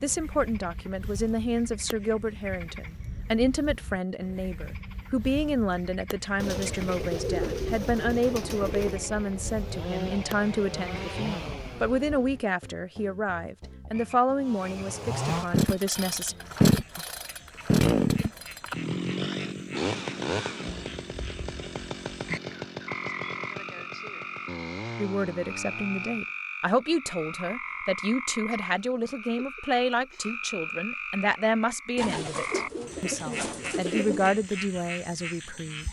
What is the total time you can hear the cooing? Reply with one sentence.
The cooing can be heard for 5 seconds in total.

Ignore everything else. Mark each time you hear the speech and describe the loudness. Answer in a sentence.
The speech can be heard from 0.0 to 16.4 s, at a steady volume; and from 24.9 to 35.8 s, at a steady volume.